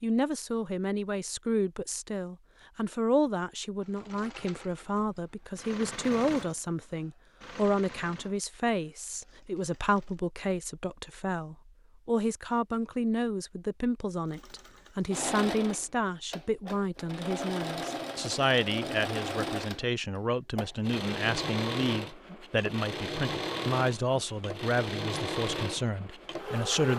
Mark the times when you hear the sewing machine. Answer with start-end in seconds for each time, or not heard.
3.8-10.2, 14.3-26.9.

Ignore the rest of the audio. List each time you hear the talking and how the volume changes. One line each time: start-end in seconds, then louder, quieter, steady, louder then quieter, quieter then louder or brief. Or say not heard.
0.0-26.9 steady.